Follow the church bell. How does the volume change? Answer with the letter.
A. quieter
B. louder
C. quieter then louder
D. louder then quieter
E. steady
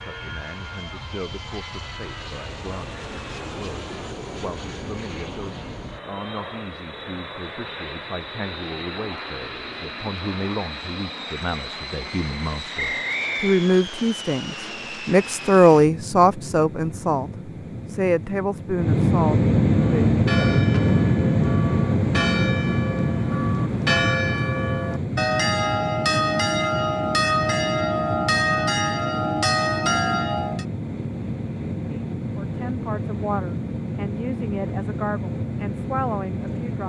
B.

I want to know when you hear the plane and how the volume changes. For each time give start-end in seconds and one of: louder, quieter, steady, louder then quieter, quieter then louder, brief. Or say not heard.
0.0-36.8 louder then quieter.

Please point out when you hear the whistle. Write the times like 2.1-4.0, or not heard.
12.8-13.7.